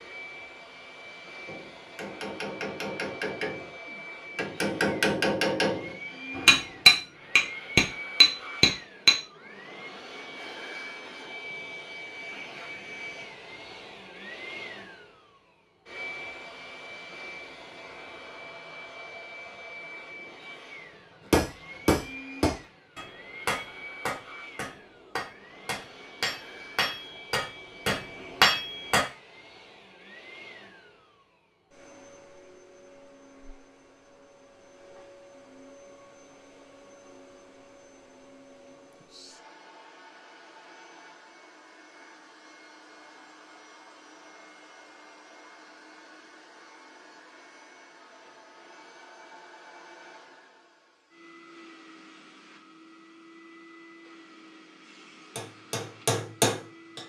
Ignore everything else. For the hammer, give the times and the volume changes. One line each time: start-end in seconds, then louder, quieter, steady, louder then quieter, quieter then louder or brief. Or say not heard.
1.4-3.7 brief
4.3-9.2 louder
21.3-29.1 quieter then louder
55.4-57.0 brief.